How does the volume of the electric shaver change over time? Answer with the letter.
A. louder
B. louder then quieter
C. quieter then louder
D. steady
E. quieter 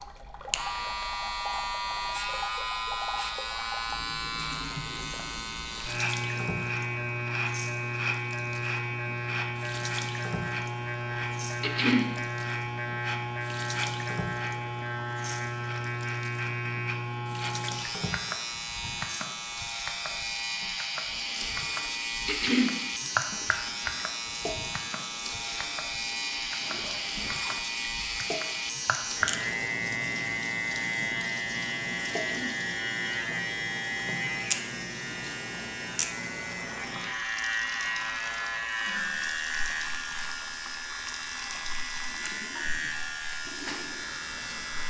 D.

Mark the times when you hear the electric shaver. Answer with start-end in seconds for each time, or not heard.
0.0-44.8.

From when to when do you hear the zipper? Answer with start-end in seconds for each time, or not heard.
26.6-27.6.